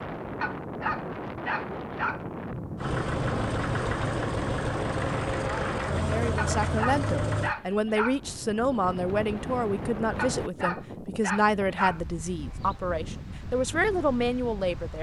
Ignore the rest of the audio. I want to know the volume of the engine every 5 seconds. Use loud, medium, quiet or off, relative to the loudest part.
loud, loud, off.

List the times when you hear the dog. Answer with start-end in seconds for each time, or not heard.
0.4-2.2, 6.3-8.2, 10.2-12.0.